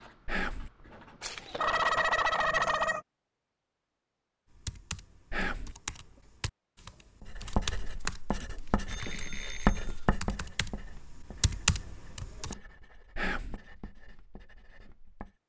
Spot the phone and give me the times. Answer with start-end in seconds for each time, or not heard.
1.2-3.0, 8.7-10.1.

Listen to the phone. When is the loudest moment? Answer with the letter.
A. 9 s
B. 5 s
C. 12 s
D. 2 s
D.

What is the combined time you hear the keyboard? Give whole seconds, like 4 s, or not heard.
8 s.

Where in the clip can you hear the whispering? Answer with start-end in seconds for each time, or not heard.
0.2-0.7, 5.3-5.8, 13.2-13.6.